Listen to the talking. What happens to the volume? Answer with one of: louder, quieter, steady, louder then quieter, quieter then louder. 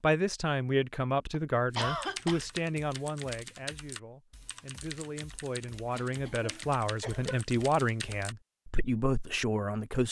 quieter then louder.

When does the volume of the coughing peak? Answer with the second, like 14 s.
2 s.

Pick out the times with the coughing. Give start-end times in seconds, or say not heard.
1.3-2.4, 5.8-7.5.